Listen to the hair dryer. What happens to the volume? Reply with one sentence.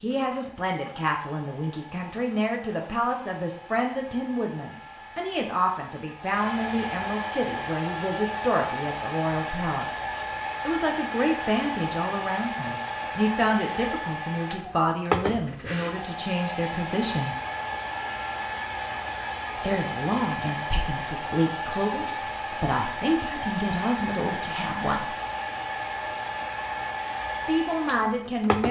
The volume of the hair dryer goes up.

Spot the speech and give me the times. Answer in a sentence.
You can hear the speech from 0.0 to 10.1 s, from 10.7 to 17.4 s, from 19.6 to 25.1 s and from 27.4 to 28.6 s.